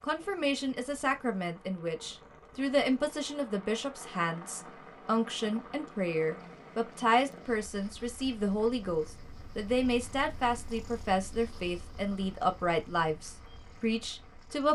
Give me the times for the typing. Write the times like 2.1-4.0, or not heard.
not heard.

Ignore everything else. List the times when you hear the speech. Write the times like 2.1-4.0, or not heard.
0.0-14.6.